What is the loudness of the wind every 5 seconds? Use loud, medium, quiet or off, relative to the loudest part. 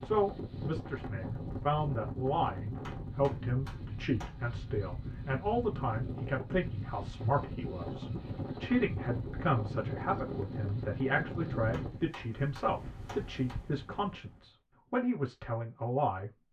loud, loud, loud, off.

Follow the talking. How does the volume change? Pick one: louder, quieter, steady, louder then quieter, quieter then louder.
steady.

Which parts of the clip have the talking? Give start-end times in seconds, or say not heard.
0.0-16.3.